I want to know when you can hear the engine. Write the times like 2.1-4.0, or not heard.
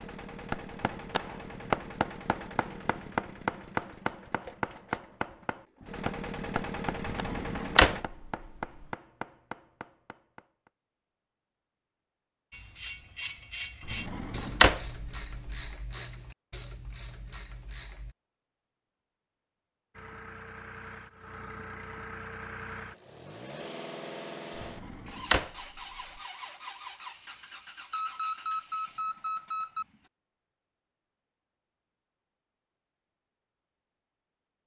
0.0-8.1, 19.9-30.1.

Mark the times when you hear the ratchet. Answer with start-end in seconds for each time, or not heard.
12.5-18.1.